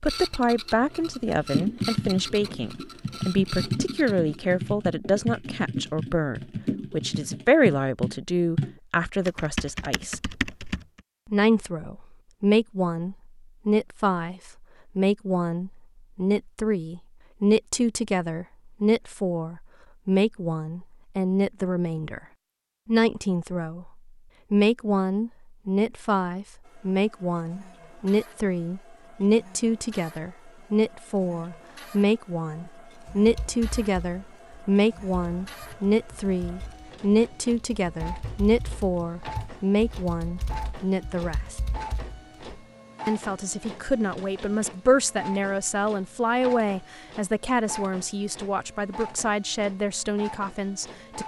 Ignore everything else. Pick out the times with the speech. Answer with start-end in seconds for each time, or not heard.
0.0-10.3, 11.3-22.2, 22.9-23.9, 24.5-41.6, 43.0-51.2.